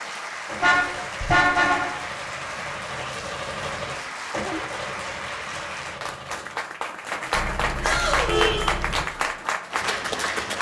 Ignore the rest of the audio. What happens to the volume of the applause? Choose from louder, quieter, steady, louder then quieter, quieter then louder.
louder.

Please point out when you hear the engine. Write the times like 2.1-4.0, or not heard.
0.0-6.6.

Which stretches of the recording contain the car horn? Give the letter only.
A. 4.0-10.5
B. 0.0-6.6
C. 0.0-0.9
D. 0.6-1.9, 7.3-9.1
D.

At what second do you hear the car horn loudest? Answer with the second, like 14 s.
1 s.